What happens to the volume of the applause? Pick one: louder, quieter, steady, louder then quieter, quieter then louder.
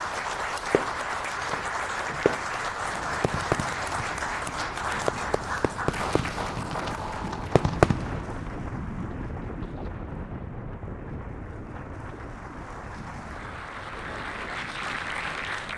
quieter then louder.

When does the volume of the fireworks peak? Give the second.
8 s.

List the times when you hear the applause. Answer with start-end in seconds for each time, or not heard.
0.0-15.7.